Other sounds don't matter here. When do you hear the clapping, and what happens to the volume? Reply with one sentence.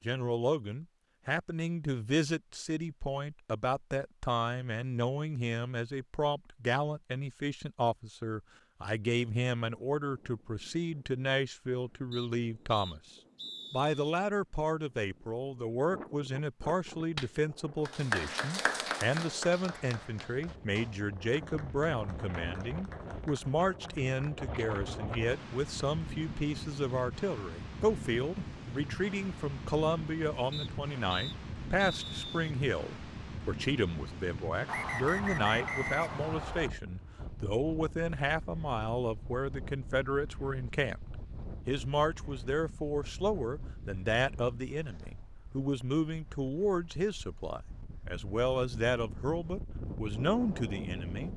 You can hear the clapping from 17.1 to 24.4 s, getting quieter.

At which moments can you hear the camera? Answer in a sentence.
The camera can't be heard in this clip.